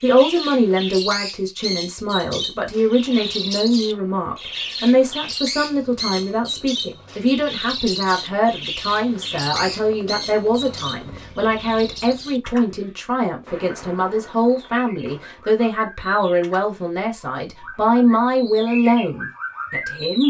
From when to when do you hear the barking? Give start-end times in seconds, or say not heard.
not heard.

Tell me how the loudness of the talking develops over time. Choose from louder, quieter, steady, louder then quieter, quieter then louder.
steady.